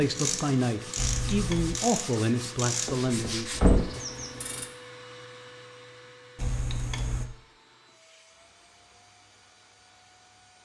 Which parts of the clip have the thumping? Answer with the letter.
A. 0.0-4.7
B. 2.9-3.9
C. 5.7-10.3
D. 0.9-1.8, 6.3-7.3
B.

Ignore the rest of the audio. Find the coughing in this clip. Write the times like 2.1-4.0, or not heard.
not heard.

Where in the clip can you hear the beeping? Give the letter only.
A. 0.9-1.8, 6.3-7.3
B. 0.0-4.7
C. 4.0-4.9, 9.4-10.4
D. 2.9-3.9
A.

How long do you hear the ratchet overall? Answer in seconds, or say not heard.
5 s.